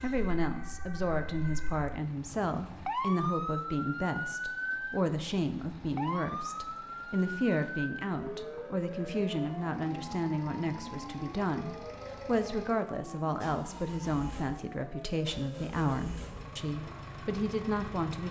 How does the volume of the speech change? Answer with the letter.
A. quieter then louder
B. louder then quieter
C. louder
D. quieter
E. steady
E.